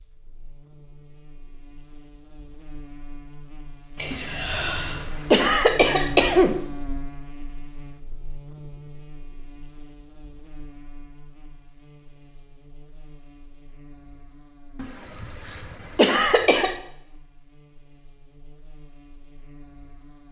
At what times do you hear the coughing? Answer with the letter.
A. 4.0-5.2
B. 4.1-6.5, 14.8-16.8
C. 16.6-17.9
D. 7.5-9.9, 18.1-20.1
B.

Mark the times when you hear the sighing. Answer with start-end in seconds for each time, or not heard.
4.0-5.2.